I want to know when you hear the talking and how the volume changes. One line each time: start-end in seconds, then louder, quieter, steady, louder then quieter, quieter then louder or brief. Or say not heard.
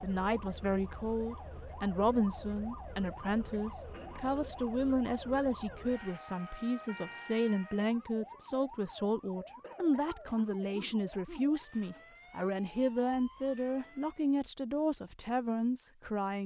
0.0-16.4 steady.